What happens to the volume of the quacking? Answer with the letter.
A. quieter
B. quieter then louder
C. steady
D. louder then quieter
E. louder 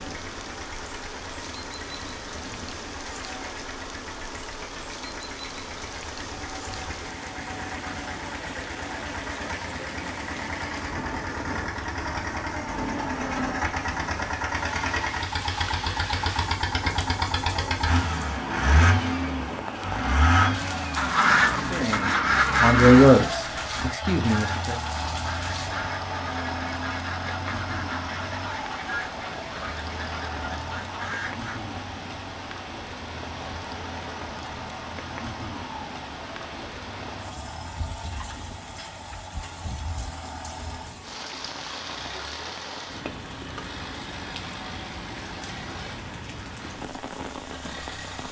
A.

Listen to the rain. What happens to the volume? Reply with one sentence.
The loudness of the rain stays about the same.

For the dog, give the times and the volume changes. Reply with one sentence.
The dog can't be heard in this clip.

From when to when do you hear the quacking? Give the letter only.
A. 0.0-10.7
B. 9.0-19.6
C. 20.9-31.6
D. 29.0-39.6
C.